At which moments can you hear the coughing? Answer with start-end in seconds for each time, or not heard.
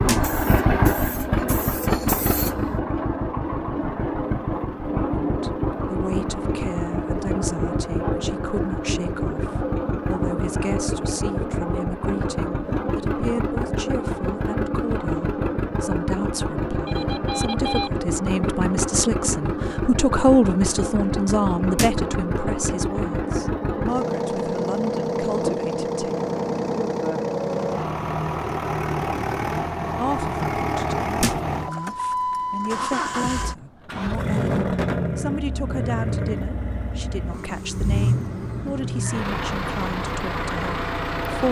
not heard.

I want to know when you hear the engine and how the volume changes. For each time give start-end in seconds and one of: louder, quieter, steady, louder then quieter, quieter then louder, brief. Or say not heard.
0.0-41.4 steady.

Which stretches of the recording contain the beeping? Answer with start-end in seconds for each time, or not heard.
16.9-17.9.